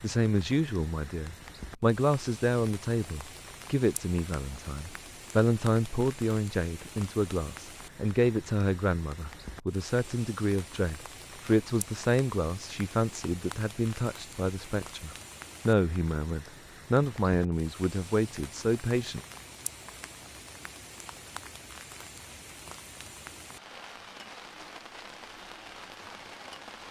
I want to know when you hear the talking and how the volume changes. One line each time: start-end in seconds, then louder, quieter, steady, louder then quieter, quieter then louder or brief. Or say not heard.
0.0-19.2 steady.